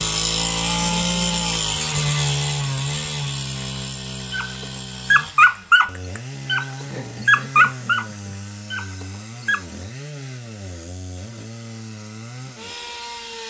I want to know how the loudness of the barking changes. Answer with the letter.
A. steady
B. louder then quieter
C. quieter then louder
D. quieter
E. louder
D.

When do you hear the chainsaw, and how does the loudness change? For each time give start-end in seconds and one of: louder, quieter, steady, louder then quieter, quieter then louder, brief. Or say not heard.
0.0-13.4 quieter.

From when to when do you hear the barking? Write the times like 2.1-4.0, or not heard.
4.3-9.6.